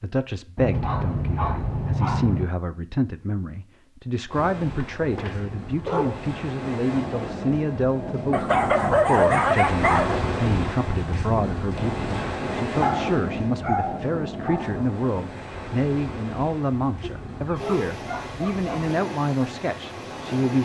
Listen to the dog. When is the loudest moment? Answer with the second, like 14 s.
9 s.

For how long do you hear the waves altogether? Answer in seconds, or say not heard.
16 s.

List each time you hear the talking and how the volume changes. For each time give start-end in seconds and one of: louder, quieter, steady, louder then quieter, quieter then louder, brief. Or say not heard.
0.0-20.6 steady.